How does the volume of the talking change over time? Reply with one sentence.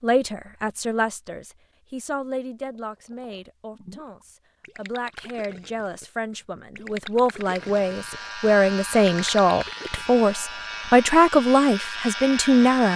The volume of the talking goes down, then up.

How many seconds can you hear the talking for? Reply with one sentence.
The talking can be heard for 13 seconds in total.